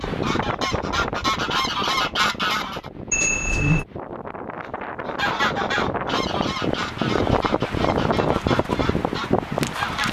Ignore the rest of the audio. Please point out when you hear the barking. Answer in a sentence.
The barking can't be heard in this clip.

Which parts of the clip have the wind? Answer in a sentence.
The wind can be heard from 0.0 to 10.0 s.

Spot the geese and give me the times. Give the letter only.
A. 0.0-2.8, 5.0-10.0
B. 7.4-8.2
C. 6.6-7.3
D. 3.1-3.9
A.